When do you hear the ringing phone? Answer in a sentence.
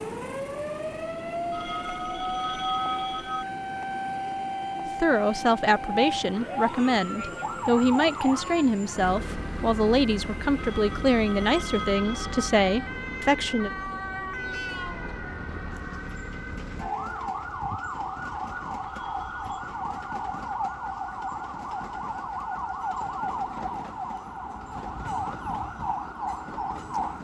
The ringing phone can be heard from 1.5 to 3.5 s, from 10.6 to 12.5 s and from 18.9 to 19.4 s.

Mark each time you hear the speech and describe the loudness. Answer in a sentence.
You can hear the speech from 5.0 to 13.7 s, at a steady volume.